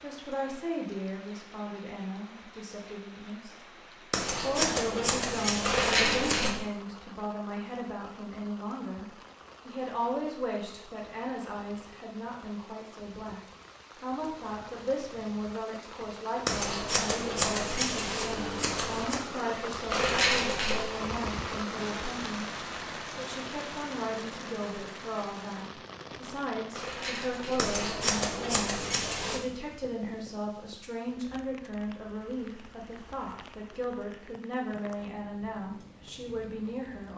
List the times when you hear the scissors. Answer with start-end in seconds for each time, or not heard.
4.1-6.6, 16.4-19.2, 27.6-29.4.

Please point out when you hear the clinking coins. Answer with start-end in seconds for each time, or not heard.
5.6-6.6, 19.9-20.9, 26.7-27.8.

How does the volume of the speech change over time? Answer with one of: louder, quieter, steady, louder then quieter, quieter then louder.
steady.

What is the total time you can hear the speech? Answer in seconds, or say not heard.
36 s.